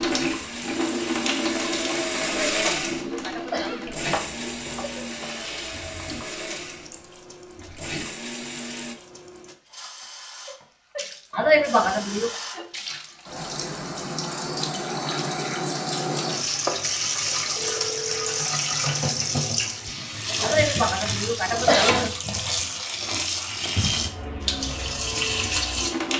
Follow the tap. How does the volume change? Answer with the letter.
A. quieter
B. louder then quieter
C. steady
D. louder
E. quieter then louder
E.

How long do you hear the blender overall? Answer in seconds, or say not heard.
9 s.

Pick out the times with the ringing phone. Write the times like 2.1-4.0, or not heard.
17.6-18.5.